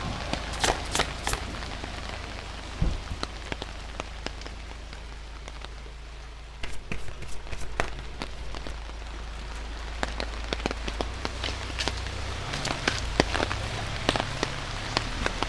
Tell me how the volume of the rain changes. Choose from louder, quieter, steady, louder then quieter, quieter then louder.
quieter then louder.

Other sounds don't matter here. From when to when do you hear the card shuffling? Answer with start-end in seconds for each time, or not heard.
0.5-1.6, 6.6-8.7, 11.4-13.2.